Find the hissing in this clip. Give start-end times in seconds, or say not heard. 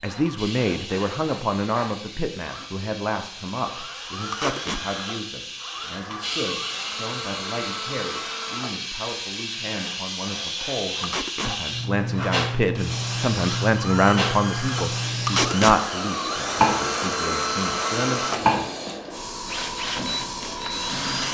0.1-21.2.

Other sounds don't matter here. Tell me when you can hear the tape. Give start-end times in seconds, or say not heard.
4.3-4.8, 11.0-11.6, 15.2-15.8.